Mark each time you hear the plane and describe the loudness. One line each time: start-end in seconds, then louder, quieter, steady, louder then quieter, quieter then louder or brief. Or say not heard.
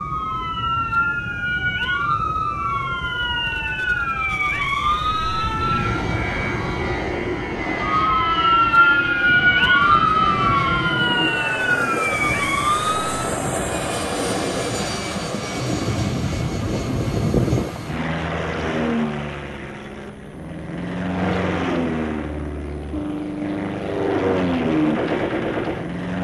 0.0-26.2 louder.